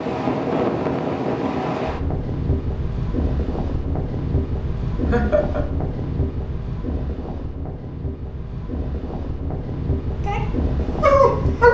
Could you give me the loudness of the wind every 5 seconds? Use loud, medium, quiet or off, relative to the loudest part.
loud, medium, loud.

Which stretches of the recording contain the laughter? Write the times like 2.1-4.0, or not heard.
5.1-5.7.